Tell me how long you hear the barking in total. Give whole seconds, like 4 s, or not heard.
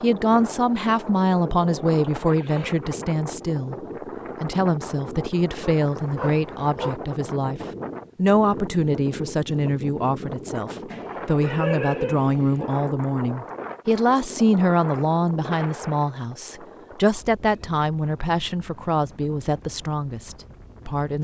3 s.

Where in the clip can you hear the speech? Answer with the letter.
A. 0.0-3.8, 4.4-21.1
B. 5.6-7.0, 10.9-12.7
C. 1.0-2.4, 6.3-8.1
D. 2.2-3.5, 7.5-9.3
A.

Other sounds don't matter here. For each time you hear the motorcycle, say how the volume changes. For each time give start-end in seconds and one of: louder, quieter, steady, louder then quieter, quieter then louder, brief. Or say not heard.
not heard.